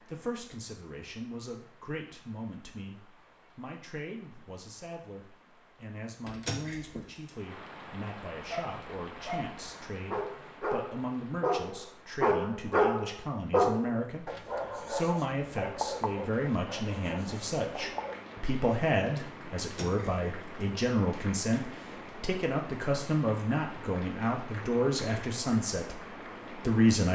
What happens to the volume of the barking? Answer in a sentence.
The loudness of the barking goes up, then down.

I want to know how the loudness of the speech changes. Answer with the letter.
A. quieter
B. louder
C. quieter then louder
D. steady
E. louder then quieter
B.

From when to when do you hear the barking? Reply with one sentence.
The barking can be heard from 8.4 to 18.1 s.